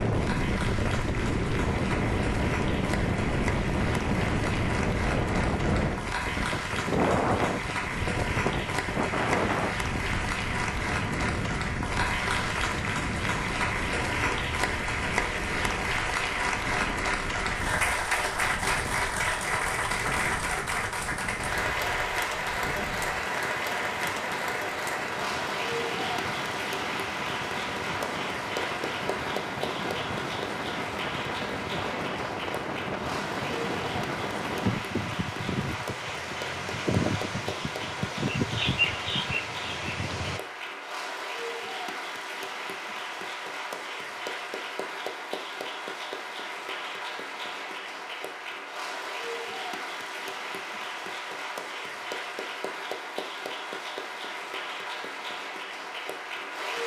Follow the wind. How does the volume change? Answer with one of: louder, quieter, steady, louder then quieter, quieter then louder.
quieter then louder.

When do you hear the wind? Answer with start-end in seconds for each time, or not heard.
0.0-40.4.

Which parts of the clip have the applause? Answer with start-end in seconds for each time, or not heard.
0.0-56.8.